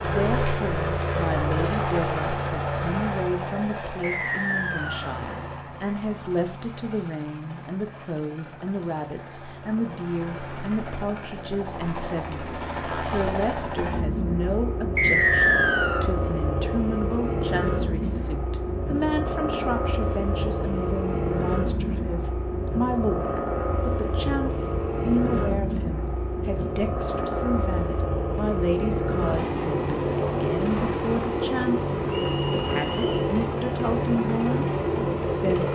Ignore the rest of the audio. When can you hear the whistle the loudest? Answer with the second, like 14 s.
15 s.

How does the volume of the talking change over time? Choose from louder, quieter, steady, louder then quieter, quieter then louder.
steady.